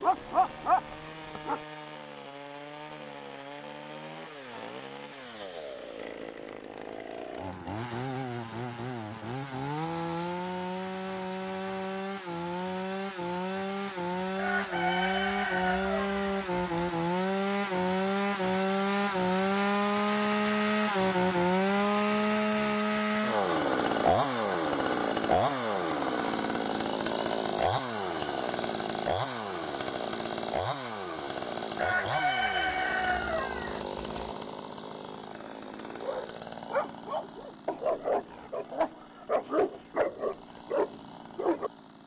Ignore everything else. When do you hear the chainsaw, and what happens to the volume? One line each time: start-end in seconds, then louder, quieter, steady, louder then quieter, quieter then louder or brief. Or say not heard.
0.0-42.0 louder then quieter.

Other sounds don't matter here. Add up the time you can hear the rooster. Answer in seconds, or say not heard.
5 s.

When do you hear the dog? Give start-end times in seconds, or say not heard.
0.0-1.6, 36.0-41.7.